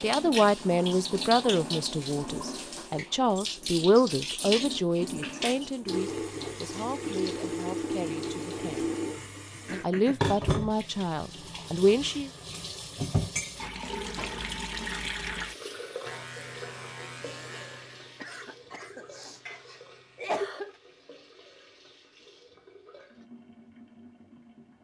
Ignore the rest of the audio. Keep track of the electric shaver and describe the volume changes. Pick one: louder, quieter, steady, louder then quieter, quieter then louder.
quieter.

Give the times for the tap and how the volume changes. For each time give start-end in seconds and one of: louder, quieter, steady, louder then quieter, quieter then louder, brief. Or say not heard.
0.0-24.8 quieter.